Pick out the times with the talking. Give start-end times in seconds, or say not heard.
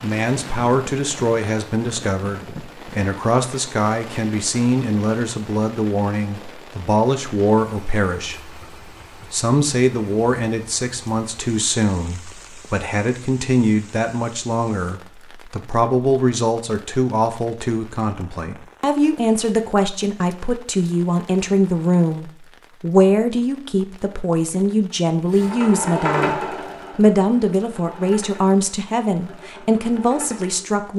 0.0-8.6, 9.3-30.9.